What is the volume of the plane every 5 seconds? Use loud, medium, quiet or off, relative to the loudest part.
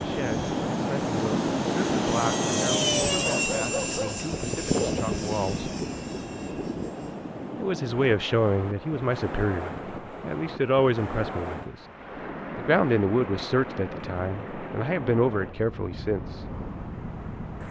loud, medium, off, off.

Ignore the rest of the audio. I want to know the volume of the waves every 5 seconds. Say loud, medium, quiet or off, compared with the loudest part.
loud, medium, medium, medium.